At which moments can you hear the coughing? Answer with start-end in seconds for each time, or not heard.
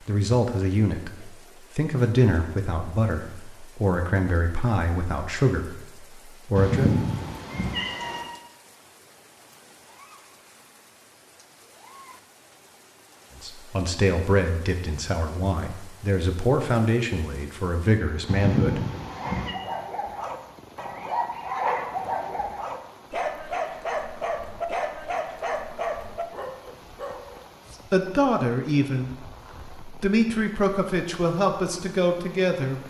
not heard.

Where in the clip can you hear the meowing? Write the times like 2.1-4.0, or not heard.
6.5-8.2, 18.2-19.6.